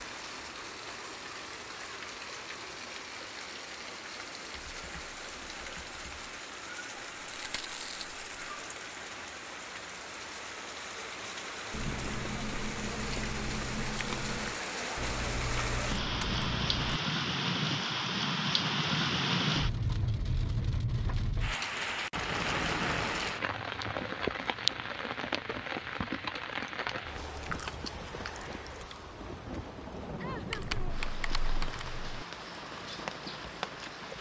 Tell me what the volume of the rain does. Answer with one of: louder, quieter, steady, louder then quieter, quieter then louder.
louder then quieter.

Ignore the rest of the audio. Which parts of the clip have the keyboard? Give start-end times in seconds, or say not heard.
4.5-6.3, 14.9-17.0, 30.5-32.2.